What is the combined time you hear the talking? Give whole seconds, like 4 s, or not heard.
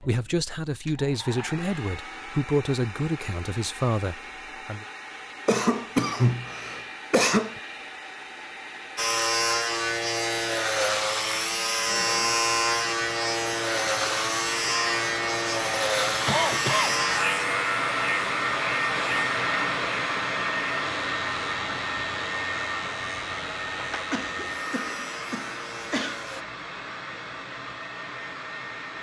5 s.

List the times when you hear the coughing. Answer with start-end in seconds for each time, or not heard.
5.5-7.6, 16.2-17.0, 24.1-26.3.